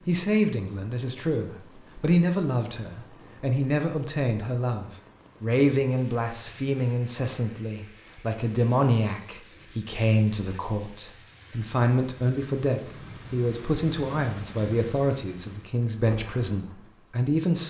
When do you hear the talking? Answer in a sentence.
The talking can be heard from 0.1 to 17.6 s.